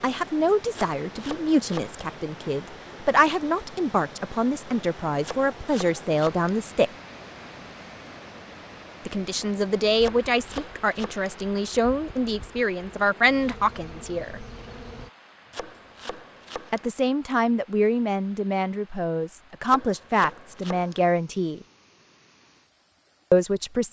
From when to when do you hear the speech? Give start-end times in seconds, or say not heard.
0.0-6.9, 9.1-14.4, 16.7-21.6, 23.3-23.8.